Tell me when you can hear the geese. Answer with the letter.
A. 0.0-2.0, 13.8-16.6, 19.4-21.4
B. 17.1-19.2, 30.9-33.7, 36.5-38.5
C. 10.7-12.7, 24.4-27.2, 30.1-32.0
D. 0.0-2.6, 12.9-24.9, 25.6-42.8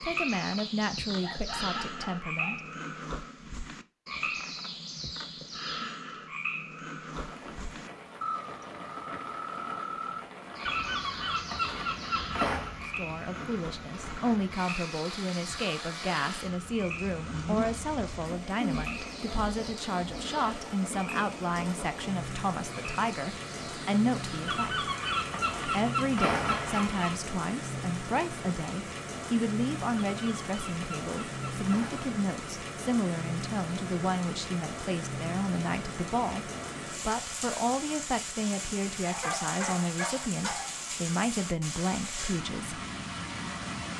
C.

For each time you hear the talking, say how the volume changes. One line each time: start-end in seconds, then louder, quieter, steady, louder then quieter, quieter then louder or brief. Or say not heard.
0.0-2.6 brief
12.9-24.9 steady
25.6-42.8 steady.